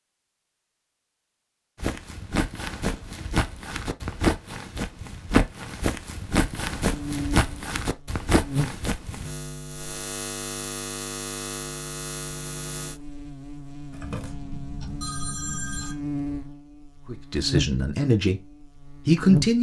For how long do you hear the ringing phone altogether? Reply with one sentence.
You can hear the ringing phone for 2 seconds altogether.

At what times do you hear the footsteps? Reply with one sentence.
The footsteps can be heard from 1.8 to 9.3 s.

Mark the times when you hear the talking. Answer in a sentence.
The talking can be heard from 17.1 to 18.4 s and from 19.1 to 19.5 s.